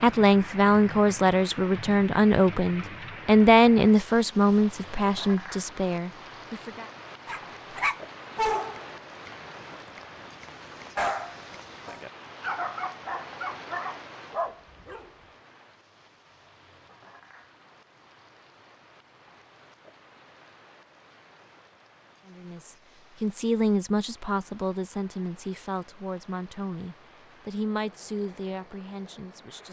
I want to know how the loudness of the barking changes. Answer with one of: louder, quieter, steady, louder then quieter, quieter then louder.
quieter then louder.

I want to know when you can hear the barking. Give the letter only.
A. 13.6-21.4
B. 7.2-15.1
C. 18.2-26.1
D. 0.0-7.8
B.